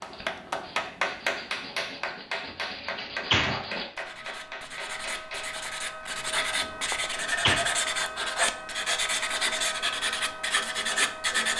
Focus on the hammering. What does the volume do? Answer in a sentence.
The volume of the hammering goes down.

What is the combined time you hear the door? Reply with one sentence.
You can hear the door for 2 seconds altogether.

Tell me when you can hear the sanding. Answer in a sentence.
You can hear the sanding from 0.0 to 11.5 s.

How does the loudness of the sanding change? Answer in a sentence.
The volume of the sanding goes up.